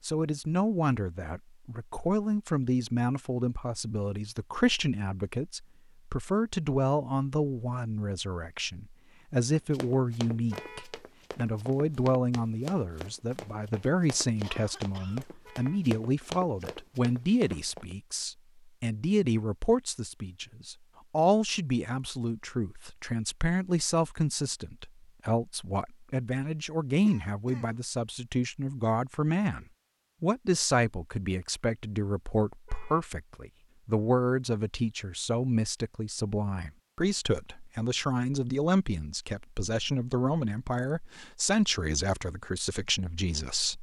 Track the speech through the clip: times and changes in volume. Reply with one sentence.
You can hear the speech from 0.0 to 43.7 s, at a steady volume.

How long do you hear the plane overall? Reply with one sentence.
You can't hear the plane here.